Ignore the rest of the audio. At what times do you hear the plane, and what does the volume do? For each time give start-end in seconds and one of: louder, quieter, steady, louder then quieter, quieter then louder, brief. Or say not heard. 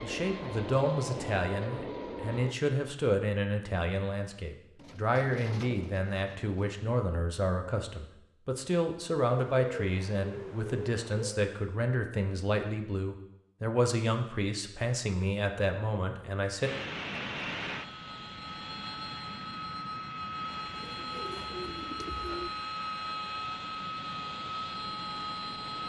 0.0-2.6 brief
16.6-25.8 steady.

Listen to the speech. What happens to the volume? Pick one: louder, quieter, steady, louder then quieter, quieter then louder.
steady.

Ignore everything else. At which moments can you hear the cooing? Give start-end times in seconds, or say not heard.
4.8-6.8, 9.2-11.4, 20.4-22.5.